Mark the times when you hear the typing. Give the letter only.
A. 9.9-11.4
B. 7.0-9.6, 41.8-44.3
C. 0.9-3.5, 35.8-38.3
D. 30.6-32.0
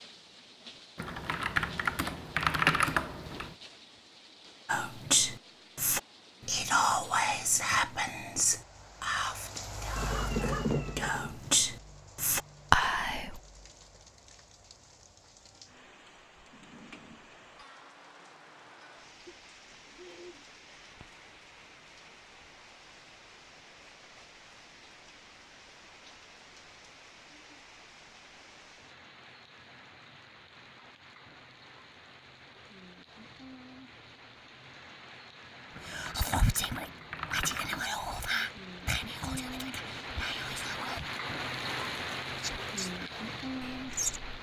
C.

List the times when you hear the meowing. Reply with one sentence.
The meowing can be heard from 9.9 to 11.4 s.